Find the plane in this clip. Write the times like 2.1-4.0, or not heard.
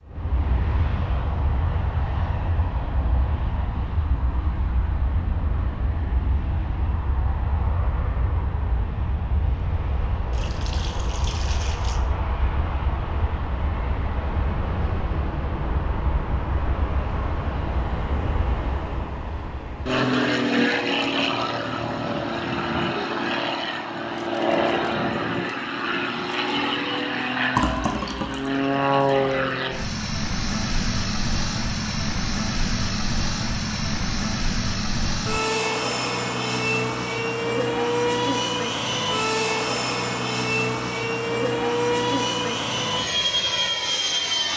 0.1-44.5.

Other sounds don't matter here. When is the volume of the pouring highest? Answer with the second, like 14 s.
28 s.